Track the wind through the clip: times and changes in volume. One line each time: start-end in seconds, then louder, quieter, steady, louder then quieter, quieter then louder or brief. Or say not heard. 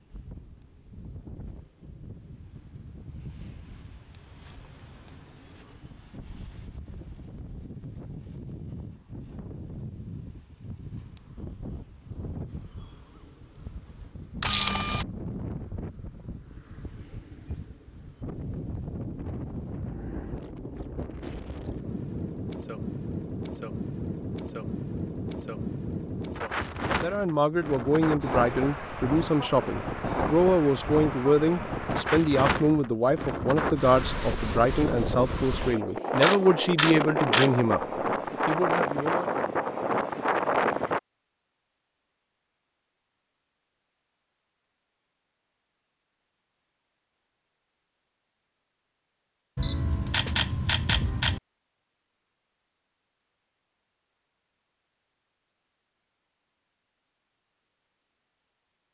0.0-41.0 louder.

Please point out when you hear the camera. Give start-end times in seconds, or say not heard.
14.4-15.1, 36.2-37.5, 49.5-51.4.